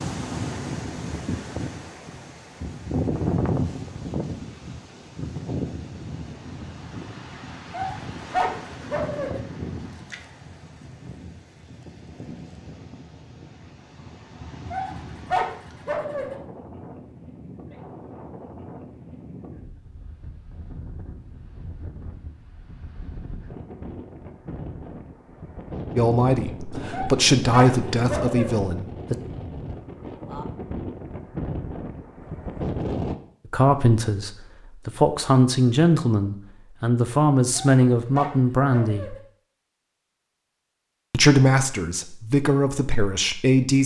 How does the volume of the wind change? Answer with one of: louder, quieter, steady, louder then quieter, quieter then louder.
quieter then louder.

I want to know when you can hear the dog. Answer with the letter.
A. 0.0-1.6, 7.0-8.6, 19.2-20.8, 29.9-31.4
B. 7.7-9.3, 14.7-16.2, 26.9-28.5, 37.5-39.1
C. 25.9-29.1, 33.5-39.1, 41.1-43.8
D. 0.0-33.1
B.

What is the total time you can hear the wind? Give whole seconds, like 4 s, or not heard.
33 s.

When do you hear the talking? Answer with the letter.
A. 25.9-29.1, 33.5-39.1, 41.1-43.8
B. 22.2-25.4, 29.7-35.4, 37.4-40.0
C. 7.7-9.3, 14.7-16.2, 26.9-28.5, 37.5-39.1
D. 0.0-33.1
A.